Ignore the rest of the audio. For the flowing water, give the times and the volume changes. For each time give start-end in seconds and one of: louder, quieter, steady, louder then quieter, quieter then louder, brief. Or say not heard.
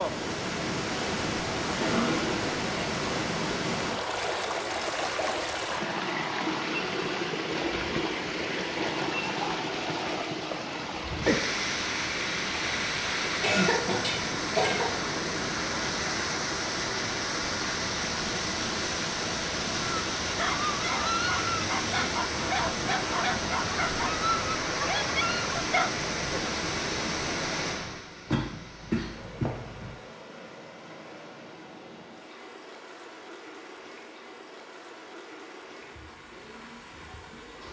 0.0-37.6 quieter.